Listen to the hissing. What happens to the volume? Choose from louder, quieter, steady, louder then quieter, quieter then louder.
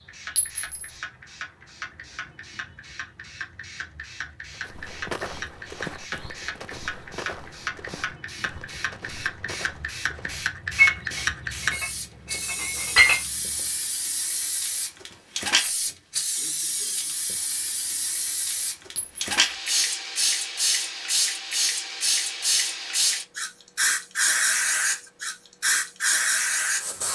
louder.